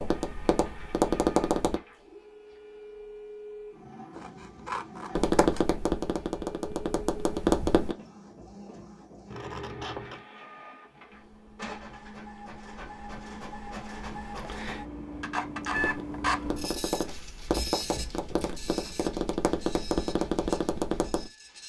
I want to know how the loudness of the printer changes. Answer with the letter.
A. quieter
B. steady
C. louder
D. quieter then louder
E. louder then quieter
E.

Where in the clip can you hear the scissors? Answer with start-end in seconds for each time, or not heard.
4.2-5.7, 9.3-10.2, 17.5-18.6.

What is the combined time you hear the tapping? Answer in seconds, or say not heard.
10 s.